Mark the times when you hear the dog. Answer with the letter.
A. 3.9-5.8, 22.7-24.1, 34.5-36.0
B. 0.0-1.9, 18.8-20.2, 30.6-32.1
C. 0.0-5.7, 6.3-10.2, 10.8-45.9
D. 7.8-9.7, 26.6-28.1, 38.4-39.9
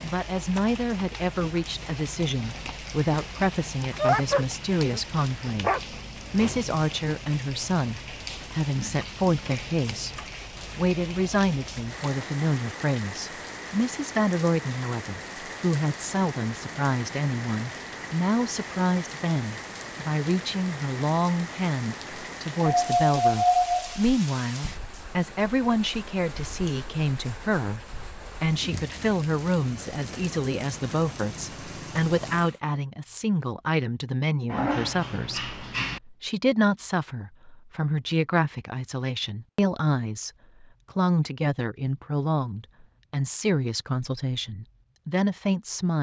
A.